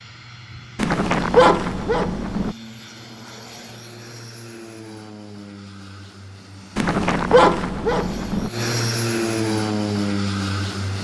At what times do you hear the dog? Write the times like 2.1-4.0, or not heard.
0.8-2.5, 6.8-8.5.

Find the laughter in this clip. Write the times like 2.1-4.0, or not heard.
not heard.